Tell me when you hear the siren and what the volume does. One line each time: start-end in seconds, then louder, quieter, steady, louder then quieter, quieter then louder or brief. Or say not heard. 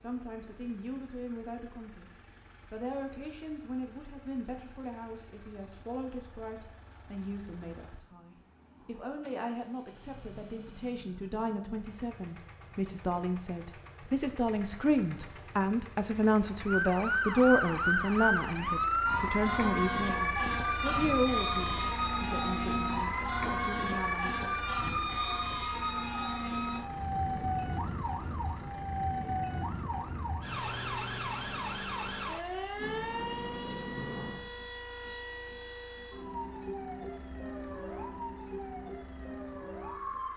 16.6-40.3 quieter.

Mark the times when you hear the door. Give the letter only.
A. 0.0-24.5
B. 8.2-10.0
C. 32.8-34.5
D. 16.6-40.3
C.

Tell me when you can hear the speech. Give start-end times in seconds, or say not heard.
0.0-24.5.